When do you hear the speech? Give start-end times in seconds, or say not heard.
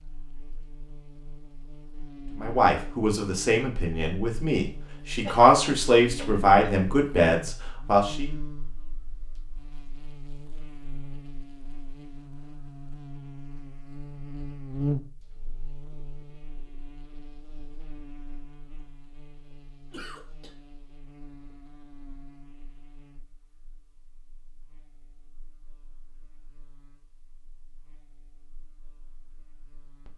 2.4-8.3.